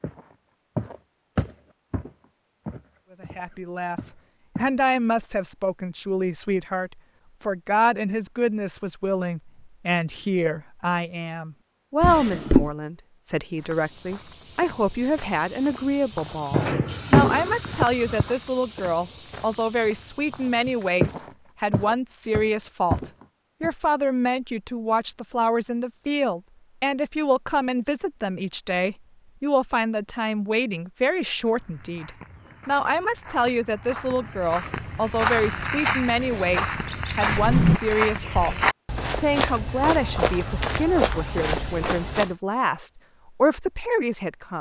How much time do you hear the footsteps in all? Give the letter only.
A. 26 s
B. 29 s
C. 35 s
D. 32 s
A.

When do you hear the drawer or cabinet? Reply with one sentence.
You can hear the drawer or cabinet from 12.0 to 12.7 s, from 16.5 to 18.2 s and from 37.2 to 37.8 s.